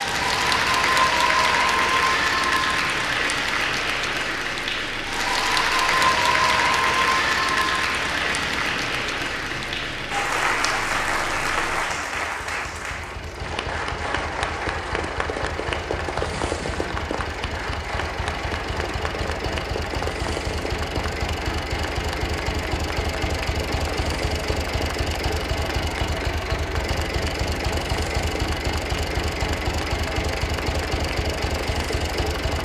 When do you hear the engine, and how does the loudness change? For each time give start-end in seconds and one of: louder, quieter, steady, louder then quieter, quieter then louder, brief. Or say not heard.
0.0-32.6 louder.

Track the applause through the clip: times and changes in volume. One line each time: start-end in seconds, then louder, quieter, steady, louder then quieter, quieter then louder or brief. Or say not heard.
0.0-32.6 quieter.